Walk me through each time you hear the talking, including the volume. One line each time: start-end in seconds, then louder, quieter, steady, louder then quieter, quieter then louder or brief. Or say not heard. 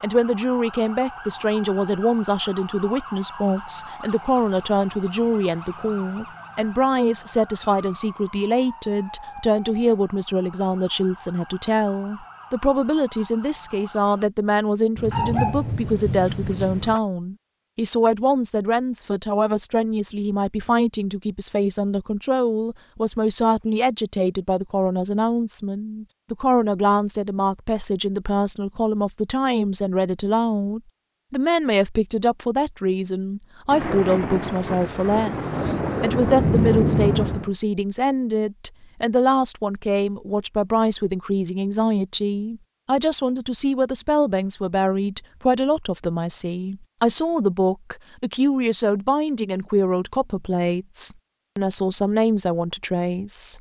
0.0-53.5 steady.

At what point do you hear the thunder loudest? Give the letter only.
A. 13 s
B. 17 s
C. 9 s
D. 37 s
D.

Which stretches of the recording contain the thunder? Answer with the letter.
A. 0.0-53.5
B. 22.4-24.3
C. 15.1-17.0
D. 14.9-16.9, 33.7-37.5
D.